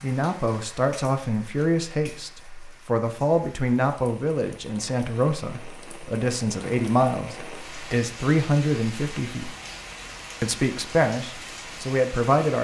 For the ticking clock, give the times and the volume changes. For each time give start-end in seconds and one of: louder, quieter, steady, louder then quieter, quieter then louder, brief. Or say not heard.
not heard.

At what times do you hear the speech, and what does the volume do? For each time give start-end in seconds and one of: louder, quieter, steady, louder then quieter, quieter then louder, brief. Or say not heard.
0.0-9.5 steady
10.4-12.5 brief.